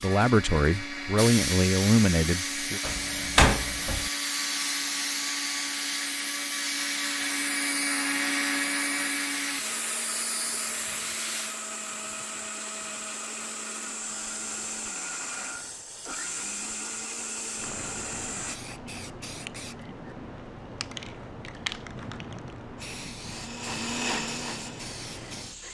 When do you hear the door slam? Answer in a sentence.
You can hear the door slam from 2.8 to 4.1 s.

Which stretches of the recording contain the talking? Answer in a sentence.
You can hear the talking from 0.0 to 2.8 s.